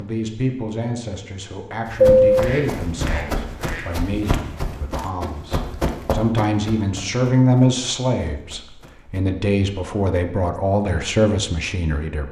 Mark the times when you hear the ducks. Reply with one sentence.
You can hear the ducks from 2.0 to 3.9 s.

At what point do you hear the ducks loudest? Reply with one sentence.
The loudest moment of the ducks is at 2 seconds.